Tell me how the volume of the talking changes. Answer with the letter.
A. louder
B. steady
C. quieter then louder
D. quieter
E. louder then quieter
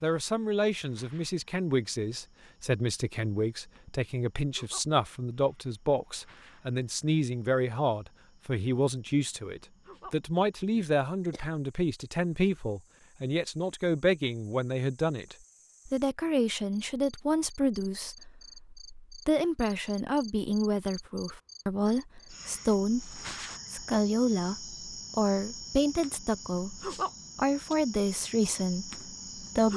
B.